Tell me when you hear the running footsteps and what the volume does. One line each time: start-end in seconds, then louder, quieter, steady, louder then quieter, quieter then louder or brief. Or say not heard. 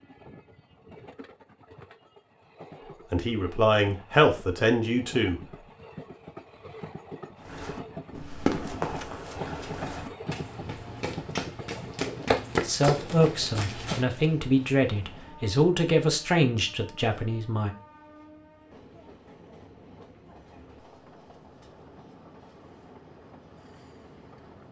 7.5-14.1 quieter then louder.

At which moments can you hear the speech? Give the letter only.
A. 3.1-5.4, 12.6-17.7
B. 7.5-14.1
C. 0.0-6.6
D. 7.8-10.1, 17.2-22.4
A.